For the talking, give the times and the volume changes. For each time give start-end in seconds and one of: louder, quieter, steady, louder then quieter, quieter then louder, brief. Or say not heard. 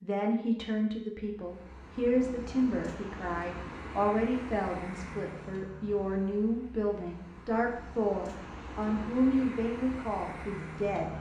0.0-11.1 steady.